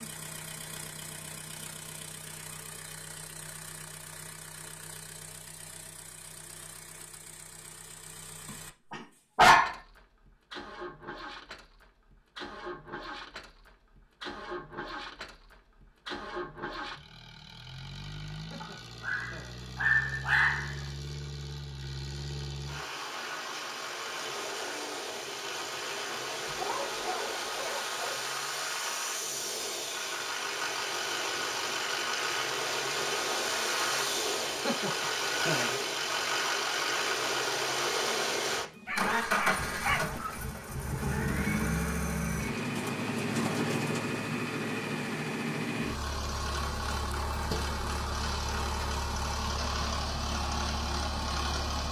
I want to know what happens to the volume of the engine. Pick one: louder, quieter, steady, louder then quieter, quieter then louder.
louder.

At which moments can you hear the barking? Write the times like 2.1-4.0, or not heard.
8.4-9.8, 18.6-20.8, 26.4-28.1, 38.9-40.5.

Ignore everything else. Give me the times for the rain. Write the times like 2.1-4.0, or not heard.
not heard.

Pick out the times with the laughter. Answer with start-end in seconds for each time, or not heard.
18.4-19.6, 34.5-35.8.